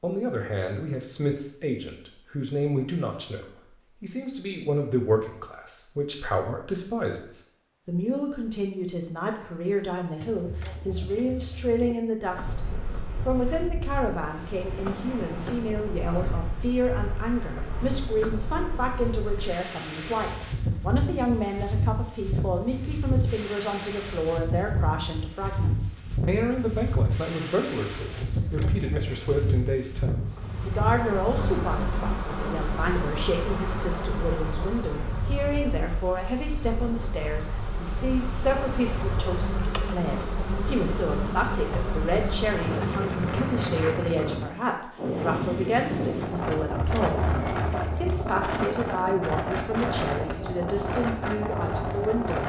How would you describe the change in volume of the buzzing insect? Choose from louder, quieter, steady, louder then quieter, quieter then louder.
quieter then louder.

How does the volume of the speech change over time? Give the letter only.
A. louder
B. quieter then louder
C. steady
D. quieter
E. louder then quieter
C.